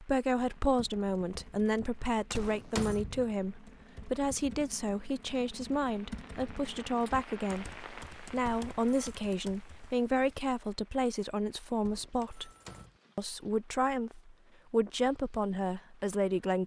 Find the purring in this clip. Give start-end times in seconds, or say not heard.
not heard.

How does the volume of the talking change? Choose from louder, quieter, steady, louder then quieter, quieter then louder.
steady.